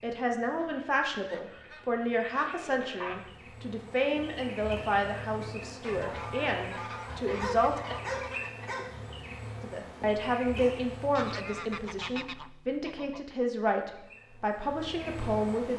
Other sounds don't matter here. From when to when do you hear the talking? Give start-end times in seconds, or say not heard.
0.0-8.0, 9.6-15.7.